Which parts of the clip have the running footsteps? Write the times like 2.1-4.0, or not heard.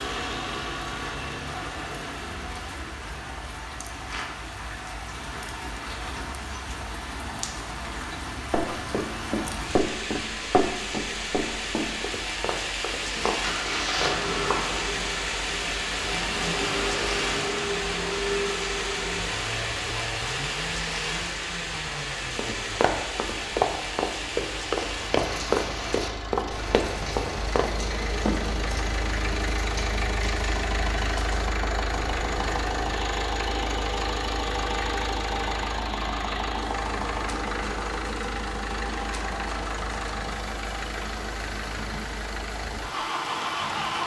8.5-14.6, 22.4-28.4.